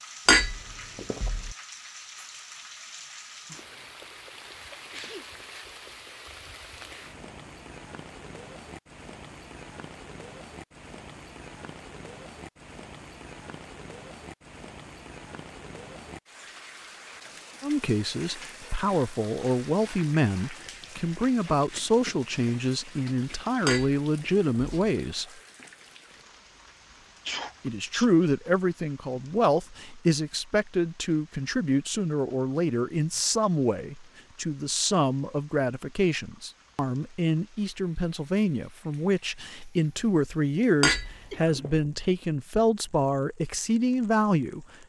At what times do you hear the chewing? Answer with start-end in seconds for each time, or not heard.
not heard.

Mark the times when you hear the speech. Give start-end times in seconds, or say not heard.
17.6-25.2, 27.6-44.6.